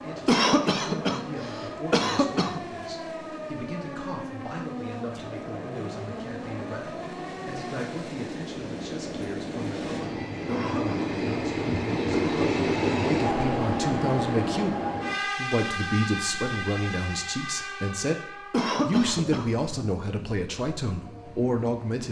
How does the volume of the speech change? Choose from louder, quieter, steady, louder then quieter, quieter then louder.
louder.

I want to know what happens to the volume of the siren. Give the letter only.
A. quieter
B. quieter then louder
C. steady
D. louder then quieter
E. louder
C.